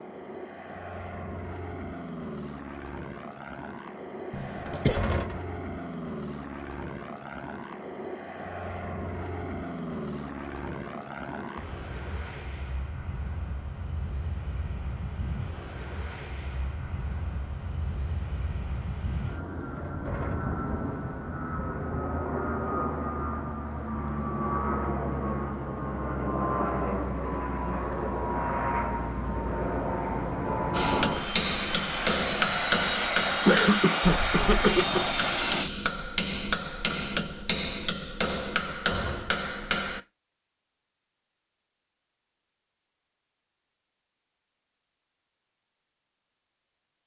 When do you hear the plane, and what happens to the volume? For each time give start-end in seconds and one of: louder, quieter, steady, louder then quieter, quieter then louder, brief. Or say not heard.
0.0-35.7 louder.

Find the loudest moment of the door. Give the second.
5 s.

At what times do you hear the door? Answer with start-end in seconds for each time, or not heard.
4.7-5.5, 19.8-20.5, 38.6-39.4.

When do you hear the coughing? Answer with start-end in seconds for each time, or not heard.
4.3-5.0, 33.5-35.0.